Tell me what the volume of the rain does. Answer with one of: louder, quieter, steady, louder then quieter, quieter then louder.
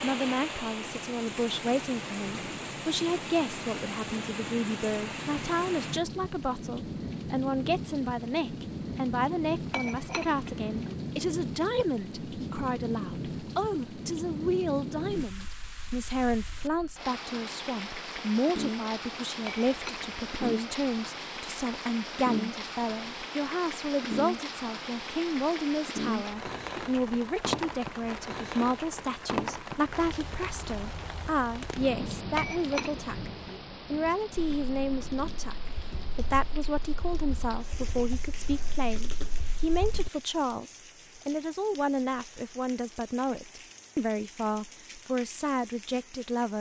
quieter.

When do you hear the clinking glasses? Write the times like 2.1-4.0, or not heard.
9.7-10.9, 19.4-20.1, 32.4-33.6.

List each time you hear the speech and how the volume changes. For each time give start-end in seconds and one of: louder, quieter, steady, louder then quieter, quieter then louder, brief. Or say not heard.
0.0-33.3 steady
33.9-46.5 steady.